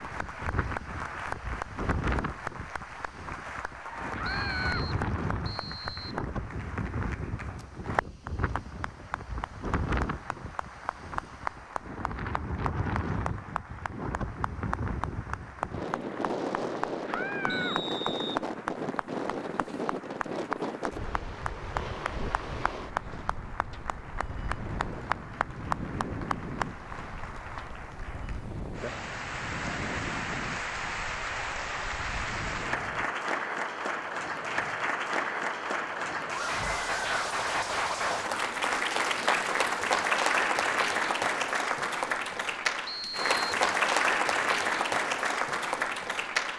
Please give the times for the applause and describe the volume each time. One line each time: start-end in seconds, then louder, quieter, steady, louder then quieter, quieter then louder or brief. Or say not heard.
0.0-46.5 louder.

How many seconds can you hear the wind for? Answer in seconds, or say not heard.
33 s.